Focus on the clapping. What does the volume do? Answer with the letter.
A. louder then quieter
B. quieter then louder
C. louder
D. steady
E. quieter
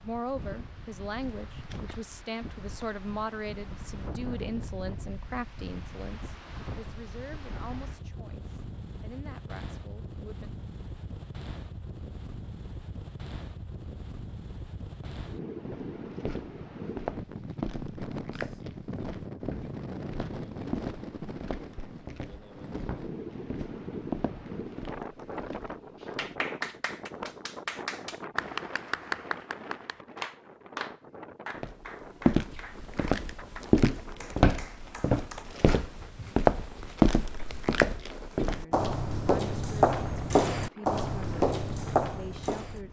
E.